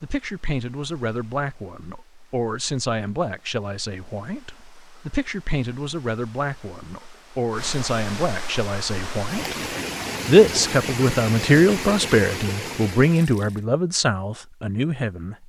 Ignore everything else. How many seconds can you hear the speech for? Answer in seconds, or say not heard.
15 s.